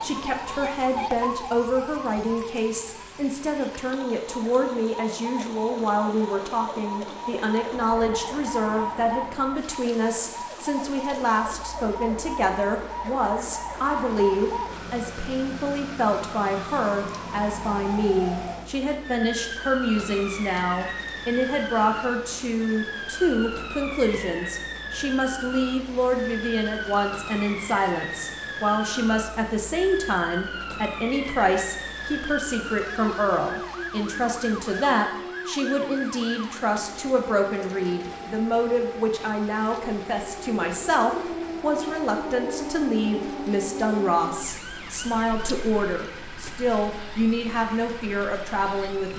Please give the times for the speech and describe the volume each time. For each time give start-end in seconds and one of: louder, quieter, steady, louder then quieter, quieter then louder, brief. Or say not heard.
0.0-49.1 steady.